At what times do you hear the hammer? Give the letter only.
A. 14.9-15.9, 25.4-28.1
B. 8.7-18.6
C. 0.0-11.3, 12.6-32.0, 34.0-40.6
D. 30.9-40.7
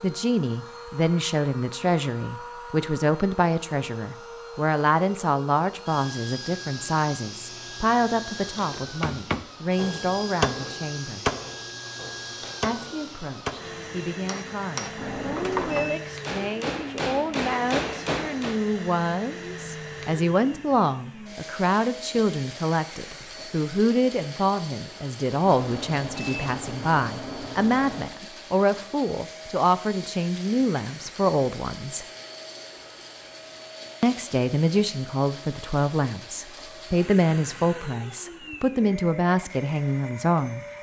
B.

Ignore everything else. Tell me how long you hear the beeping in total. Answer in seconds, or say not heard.
4 s.